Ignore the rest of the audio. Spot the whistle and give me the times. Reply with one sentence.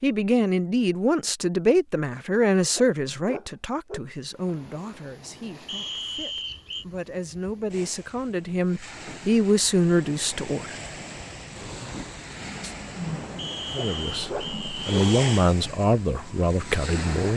The whistle can be heard from 5.7 to 6.8 s and from 13.3 to 15.5 s.